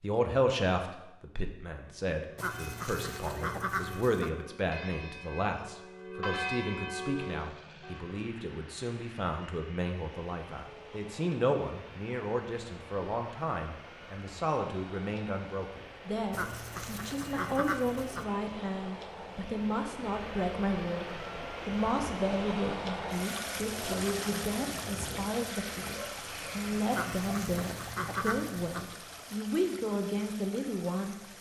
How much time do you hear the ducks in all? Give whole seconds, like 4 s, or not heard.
6 s.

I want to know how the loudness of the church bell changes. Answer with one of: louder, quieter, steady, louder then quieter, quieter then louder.
louder.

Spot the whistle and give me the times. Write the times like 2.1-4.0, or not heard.
not heard.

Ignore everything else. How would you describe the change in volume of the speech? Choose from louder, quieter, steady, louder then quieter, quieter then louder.
steady.